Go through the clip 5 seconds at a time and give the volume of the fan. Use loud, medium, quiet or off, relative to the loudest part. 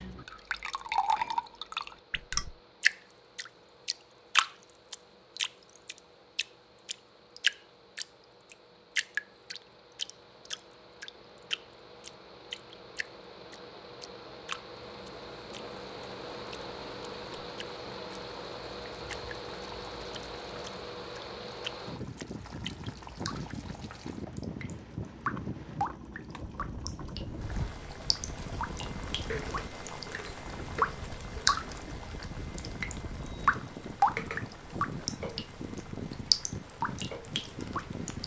quiet, quiet, medium, loud, loud, loud, loud, loud.